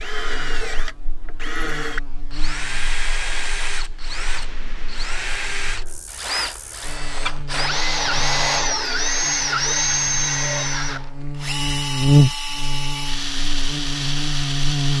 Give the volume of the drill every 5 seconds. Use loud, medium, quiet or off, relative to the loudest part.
medium, loud, loud.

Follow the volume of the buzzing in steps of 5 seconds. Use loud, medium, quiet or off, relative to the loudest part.
quiet, quiet, loud.